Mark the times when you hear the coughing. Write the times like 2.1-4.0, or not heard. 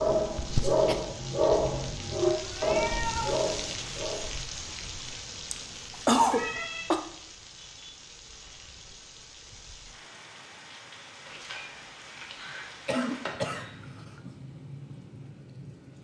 0.3-0.9, 5.5-7.0, 12.8-14.3.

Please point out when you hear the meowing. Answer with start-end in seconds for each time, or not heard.
2.2-3.4, 6.2-6.9, 11.2-13.7.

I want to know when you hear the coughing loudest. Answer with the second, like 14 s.
6 s.